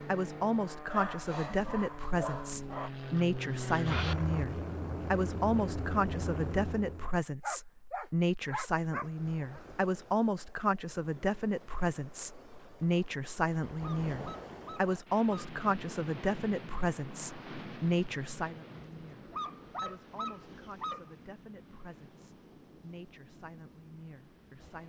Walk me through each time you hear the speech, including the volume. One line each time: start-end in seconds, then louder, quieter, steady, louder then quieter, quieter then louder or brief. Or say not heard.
0.1-24.8 quieter.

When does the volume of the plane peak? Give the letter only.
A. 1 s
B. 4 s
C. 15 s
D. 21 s
B.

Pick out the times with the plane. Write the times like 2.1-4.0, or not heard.
0.0-7.1.